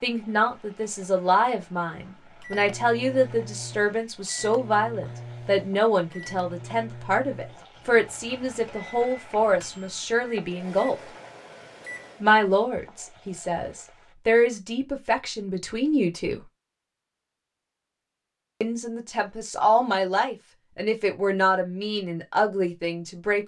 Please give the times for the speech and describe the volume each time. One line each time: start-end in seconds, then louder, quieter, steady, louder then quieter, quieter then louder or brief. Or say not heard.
0.0-10.9 steady
12.2-16.4 louder then quieter
18.6-23.4 steady.